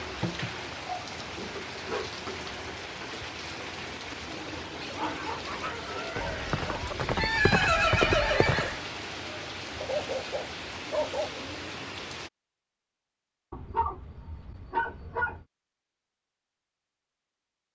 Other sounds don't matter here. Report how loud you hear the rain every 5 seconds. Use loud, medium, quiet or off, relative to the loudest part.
loud, loud, loud, off.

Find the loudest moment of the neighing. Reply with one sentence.
The volume of the neighing peaks at 8 seconds.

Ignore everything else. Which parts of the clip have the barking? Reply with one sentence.
The barking can be heard from 0.2 to 2.5 s, from 4.9 to 7.0 s, from 9.8 to 11.4 s and from 13.5 to 15.4 s.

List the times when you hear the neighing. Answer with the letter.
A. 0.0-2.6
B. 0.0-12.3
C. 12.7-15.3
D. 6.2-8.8
D.